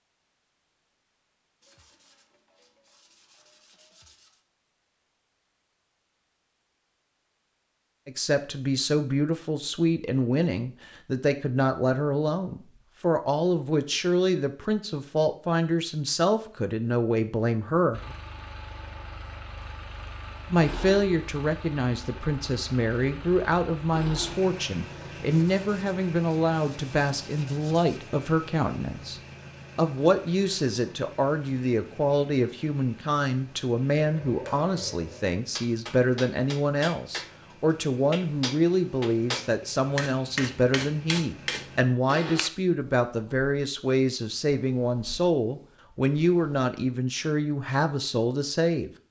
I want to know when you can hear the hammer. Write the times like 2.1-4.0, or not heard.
34.0-42.5.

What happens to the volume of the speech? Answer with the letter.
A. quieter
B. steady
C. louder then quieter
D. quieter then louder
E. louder
B.